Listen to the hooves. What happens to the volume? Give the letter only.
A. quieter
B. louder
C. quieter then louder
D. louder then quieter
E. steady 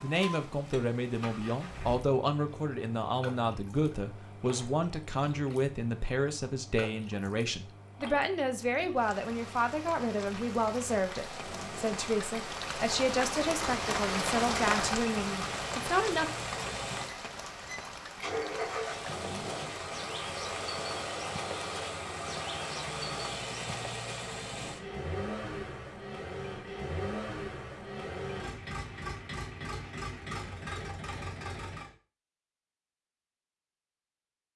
E.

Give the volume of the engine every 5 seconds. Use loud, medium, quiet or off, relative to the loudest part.
medium, quiet, medium, loud, loud, loud, loud.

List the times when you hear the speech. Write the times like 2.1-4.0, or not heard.
0.0-16.3.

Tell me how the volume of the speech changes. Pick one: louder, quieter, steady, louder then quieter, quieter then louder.
steady.